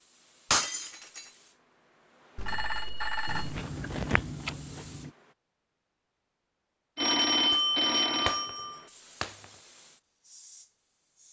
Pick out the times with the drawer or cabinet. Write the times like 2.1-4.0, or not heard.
not heard.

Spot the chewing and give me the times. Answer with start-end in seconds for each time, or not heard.
3.2-5.1.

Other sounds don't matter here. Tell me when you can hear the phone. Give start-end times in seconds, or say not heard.
2.4-3.6, 7.0-8.8.